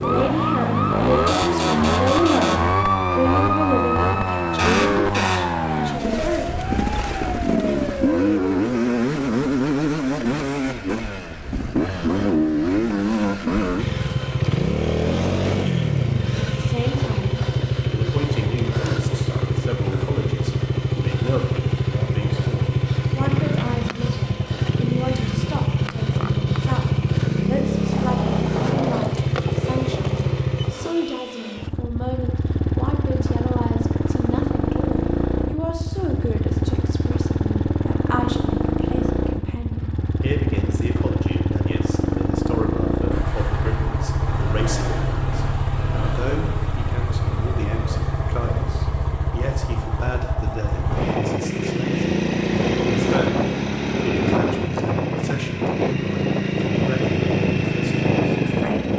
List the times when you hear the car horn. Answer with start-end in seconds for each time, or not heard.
not heard.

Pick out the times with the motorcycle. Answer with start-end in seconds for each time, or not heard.
0.0-58.9.